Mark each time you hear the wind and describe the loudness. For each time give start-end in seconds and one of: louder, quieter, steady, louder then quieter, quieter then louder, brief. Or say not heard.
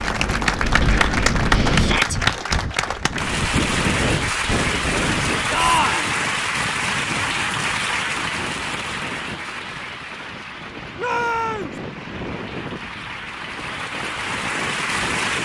0.0-15.4 quieter.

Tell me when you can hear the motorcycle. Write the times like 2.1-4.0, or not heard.
not heard.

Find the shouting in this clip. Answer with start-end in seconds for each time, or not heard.
1.8-2.2, 5.5-6.1, 10.9-11.8.